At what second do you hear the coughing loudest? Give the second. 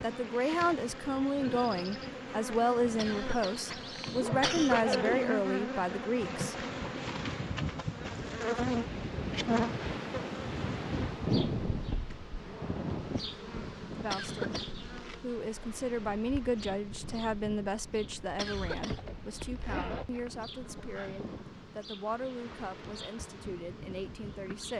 5 s.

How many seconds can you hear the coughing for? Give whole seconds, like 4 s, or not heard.
3 s.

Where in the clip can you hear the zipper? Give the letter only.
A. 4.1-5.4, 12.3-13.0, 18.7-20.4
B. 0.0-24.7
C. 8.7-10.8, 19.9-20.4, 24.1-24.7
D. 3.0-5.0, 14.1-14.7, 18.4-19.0
A.